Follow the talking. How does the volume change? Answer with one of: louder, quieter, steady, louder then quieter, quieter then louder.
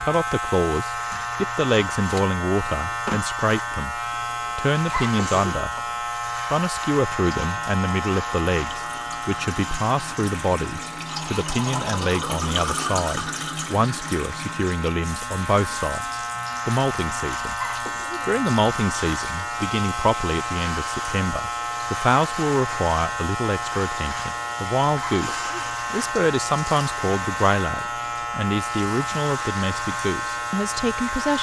steady.